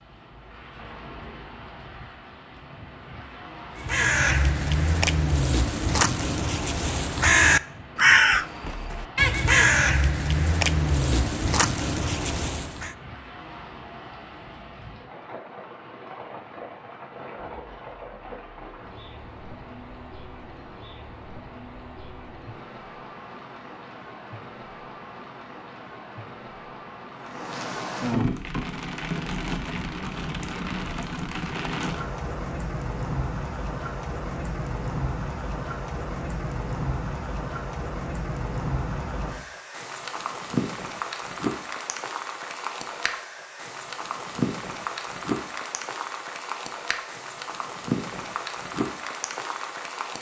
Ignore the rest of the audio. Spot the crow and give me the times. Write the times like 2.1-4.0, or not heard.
3.8-12.9.